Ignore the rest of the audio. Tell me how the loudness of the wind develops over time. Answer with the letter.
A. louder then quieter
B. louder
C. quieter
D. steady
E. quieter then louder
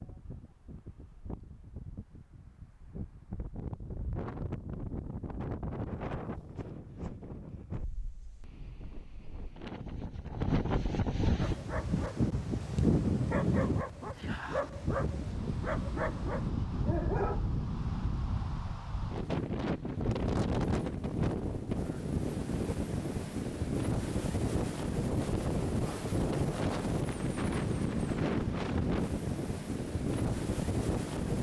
B.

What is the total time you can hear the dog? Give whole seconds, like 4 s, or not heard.
6 s.